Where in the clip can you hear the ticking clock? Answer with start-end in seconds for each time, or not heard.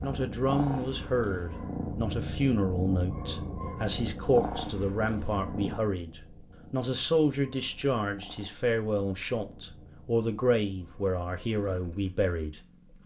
not heard.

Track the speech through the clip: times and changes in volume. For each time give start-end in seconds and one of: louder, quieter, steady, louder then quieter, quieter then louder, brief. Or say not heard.
0.0-12.6 steady.